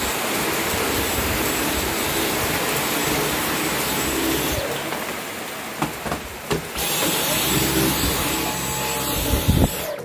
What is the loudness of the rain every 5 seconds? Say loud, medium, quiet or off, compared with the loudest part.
loud, medium.